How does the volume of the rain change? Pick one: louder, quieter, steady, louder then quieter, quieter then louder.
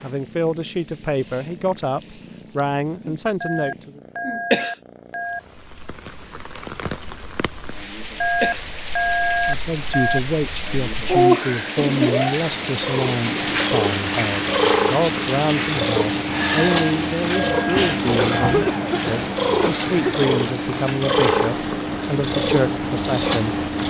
louder then quieter.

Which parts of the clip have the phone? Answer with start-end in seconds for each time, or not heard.
3.4-5.4, 8.2-10.2, 16.6-18.6.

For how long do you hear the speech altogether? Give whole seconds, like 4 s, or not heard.
18 s.